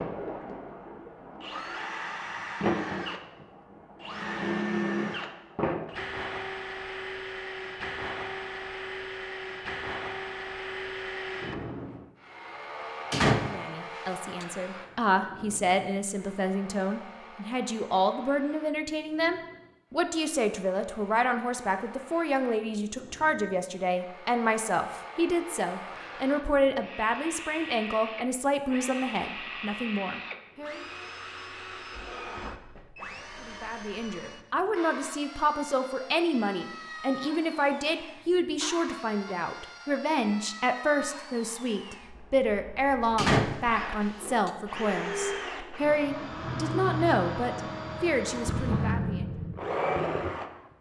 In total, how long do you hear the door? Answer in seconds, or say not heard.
3 s.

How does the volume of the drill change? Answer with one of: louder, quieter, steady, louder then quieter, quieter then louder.
quieter then louder.